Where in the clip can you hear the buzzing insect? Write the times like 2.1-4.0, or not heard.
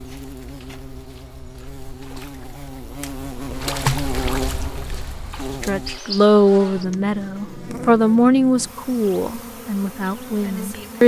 0.0-11.0.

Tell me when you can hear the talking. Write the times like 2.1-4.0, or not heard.
5.6-11.0.